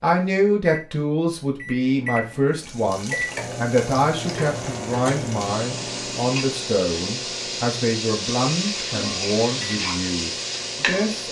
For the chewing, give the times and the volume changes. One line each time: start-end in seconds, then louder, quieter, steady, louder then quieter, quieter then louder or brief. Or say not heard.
not heard.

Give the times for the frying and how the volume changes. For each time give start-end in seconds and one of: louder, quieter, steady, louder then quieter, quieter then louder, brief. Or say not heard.
2.5-11.2 louder.